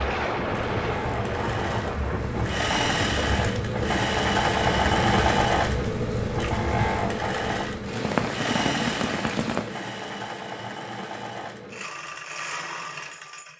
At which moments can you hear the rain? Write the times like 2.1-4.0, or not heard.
0.0-9.8.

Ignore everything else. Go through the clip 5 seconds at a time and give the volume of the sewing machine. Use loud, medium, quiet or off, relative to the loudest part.
loud, loud, medium.